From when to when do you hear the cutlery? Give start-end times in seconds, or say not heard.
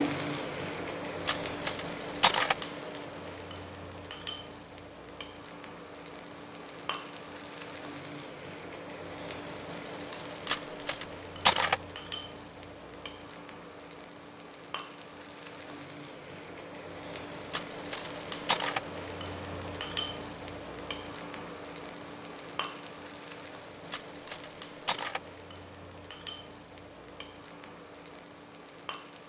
1.2-2.5, 10.4-11.8, 17.5-18.8, 23.9-25.2.